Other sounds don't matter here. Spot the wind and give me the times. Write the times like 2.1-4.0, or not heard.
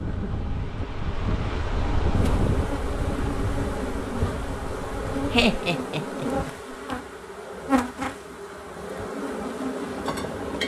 0.0-5.5.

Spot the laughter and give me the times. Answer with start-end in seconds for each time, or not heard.
5.3-6.5.